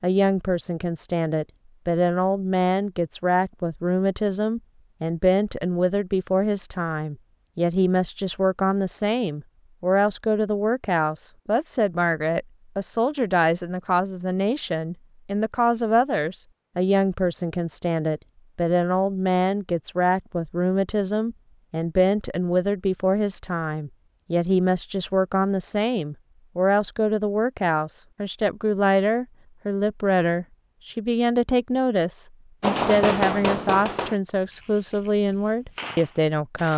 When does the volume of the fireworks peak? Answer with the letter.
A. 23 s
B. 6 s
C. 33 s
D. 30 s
C.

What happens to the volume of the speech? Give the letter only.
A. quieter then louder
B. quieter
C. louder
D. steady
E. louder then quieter
D.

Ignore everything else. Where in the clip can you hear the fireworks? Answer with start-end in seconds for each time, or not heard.
32.6-36.7.